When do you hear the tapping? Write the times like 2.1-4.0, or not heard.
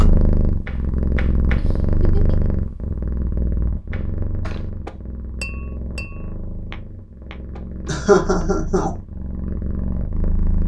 0.0-1.6, 3.9-8.4.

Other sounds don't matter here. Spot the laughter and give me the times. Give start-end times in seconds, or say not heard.
1.6-2.5, 7.8-8.9.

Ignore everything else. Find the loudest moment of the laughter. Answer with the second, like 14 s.
8 s.